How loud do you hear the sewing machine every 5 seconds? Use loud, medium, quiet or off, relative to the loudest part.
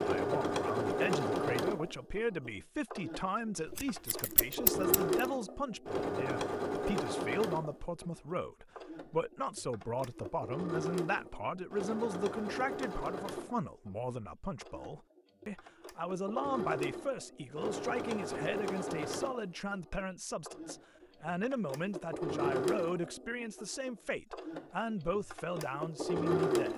loud, loud, medium, medium, medium, loud.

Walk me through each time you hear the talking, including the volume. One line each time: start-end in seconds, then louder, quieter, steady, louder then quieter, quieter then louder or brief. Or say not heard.
0.0-26.7 steady.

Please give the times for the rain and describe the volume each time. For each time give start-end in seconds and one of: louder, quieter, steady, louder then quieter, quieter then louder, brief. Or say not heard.
not heard.